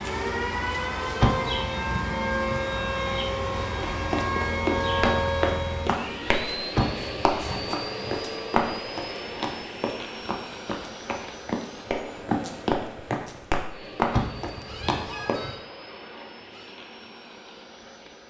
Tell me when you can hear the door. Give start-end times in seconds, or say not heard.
1.2-2.6, 6.8-8.2, 14.1-15.5.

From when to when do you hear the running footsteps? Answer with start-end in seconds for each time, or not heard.
3.8-15.4.